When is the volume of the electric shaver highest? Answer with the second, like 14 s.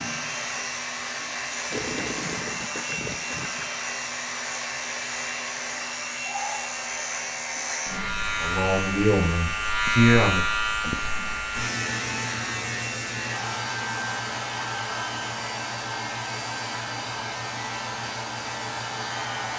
10 s.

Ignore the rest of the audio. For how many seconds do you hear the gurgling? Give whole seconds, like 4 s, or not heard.
2 s.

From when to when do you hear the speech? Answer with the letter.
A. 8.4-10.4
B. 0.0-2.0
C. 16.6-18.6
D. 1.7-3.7
A.